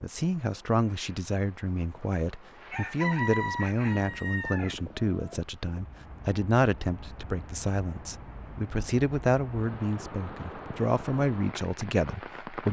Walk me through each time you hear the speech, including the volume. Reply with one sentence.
You can hear the speech from 0.0 to 12.6 s, at a steady volume.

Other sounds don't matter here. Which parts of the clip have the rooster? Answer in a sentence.
You can hear the rooster from 2.7 to 5.4 s.